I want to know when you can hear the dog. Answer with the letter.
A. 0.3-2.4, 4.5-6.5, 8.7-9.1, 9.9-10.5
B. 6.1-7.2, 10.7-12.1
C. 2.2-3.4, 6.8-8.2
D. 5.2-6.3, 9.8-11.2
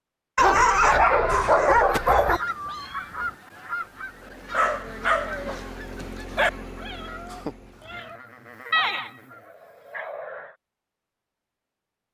A.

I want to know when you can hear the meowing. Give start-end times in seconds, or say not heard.
2.2-3.4, 6.8-8.2.